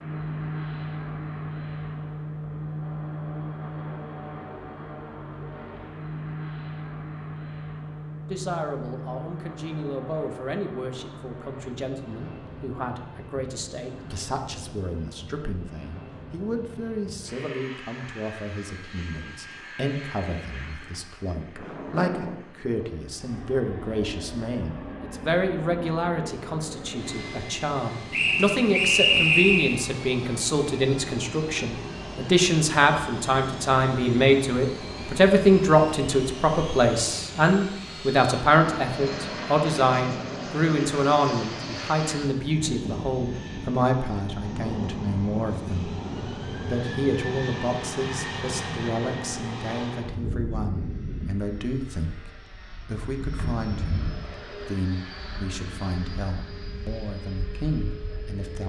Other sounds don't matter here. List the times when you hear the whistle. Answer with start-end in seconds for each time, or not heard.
28.1-29.8.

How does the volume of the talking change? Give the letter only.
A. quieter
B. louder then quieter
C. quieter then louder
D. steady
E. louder
B.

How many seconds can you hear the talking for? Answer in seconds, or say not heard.
50 s.